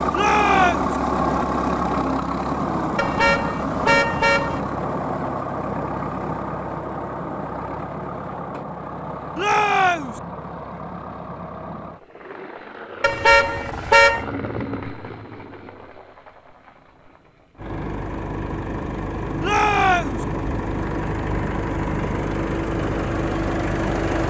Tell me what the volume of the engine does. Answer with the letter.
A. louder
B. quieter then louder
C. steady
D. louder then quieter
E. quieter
B.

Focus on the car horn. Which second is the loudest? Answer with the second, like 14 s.
14 s.